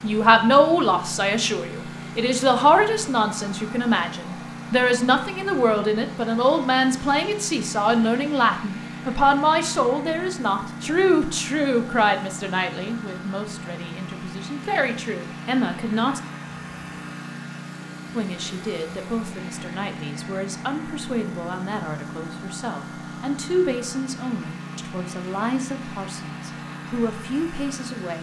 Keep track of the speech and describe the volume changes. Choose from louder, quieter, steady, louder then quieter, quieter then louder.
quieter.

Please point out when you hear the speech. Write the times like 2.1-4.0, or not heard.
0.0-16.2, 18.1-28.1.